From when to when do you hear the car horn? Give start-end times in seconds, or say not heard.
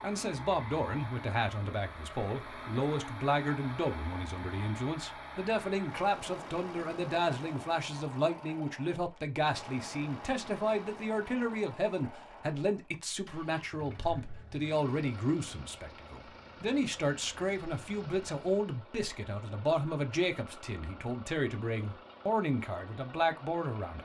not heard.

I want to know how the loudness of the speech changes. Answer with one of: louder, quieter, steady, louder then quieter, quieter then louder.
steady.